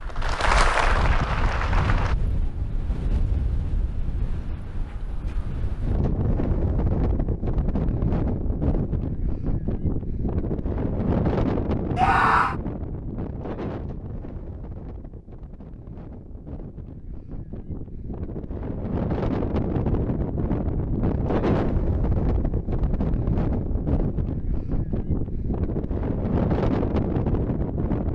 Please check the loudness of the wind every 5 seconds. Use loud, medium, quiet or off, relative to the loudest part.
medium, loud, loud, medium, loud, loud.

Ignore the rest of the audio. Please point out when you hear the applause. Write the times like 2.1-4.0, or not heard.
0.0-2.1.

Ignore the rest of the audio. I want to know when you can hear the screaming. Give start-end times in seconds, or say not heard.
11.9-12.6.